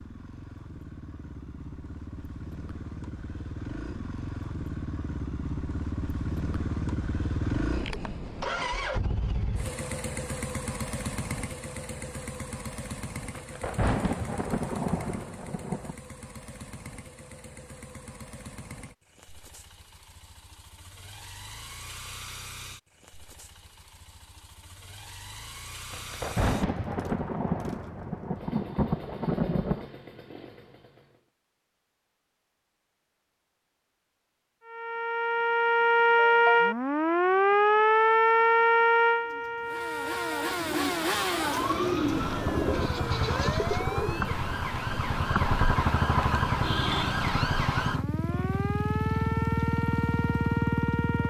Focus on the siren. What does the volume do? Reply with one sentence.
The loudness of the siren goes down.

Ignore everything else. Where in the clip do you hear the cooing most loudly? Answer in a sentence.
The volume of the cooing peaks at 42 seconds.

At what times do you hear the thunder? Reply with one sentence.
The thunder can be heard from 13.3 to 15.9 s and from 25.9 to 29.9 s.